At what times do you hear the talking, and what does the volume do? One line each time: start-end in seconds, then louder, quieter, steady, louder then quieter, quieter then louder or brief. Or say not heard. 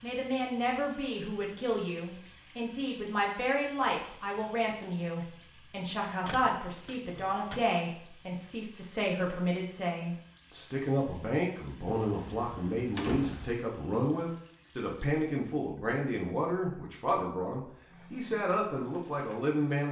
0.0-19.8 steady.